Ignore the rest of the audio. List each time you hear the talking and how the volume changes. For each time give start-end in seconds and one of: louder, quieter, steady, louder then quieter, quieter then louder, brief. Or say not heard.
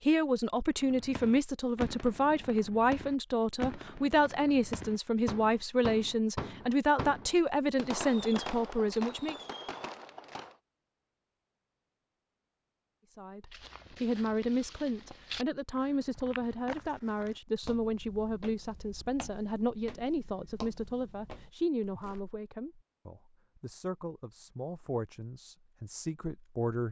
0.1-9.3 steady
13.2-26.8 quieter.